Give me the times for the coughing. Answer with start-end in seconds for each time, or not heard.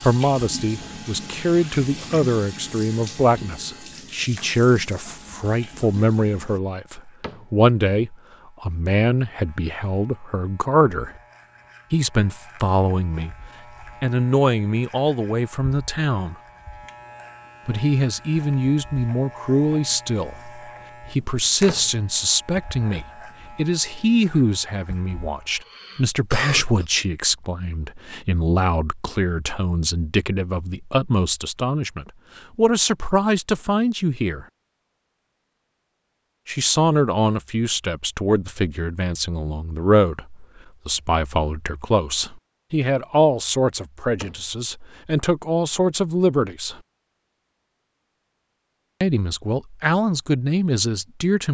25.6-26.9.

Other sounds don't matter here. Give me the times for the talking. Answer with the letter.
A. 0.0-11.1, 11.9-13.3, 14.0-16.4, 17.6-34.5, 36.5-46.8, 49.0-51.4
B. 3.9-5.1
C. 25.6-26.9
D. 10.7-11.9
A.